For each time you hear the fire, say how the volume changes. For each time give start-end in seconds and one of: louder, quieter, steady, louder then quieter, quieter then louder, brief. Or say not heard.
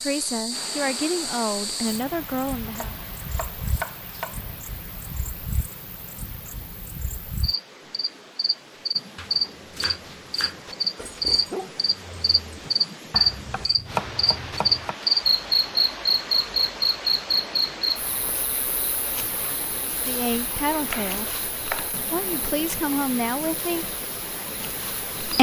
not heard.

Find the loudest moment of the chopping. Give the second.
14 s.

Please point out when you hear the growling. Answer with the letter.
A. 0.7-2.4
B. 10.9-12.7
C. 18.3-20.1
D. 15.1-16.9
B.